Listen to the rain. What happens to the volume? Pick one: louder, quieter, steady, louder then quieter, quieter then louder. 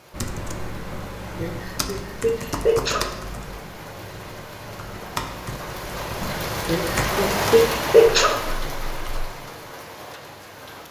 louder then quieter.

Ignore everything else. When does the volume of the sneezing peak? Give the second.
8 s.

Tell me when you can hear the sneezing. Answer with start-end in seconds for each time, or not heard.
0.9-3.2, 6.2-8.4.